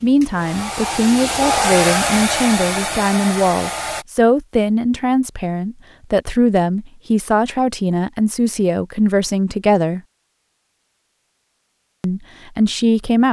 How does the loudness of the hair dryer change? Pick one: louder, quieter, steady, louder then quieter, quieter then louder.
louder then quieter.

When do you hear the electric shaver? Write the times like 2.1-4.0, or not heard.
not heard.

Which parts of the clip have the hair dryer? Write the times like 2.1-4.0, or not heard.
0.0-4.0.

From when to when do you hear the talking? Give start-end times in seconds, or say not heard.
0.0-10.0, 12.0-13.2.